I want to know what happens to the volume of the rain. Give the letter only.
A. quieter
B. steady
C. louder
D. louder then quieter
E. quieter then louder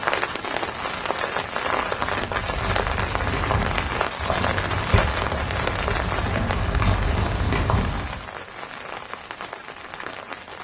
A.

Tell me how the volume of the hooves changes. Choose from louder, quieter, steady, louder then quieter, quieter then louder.
louder.